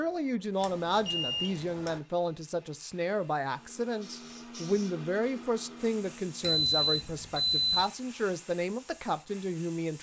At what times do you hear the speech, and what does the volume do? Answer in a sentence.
You can hear the speech from 0.0 to 9.9 s, at a steady volume.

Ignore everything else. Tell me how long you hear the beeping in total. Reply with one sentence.
The beeping can be heard for 3 seconds in total.